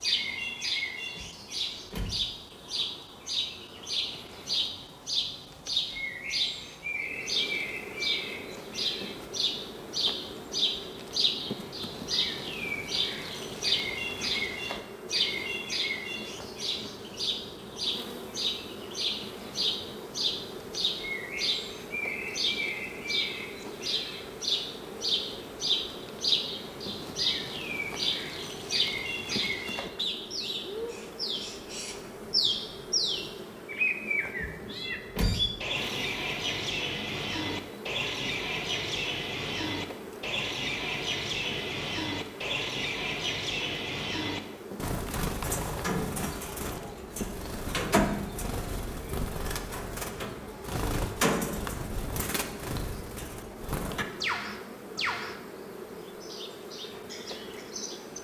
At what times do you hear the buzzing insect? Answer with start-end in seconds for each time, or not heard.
6.8-58.1.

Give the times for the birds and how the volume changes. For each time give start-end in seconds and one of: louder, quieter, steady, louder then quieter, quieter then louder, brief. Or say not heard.
0.0-55.4 steady
56.2-58.1 brief.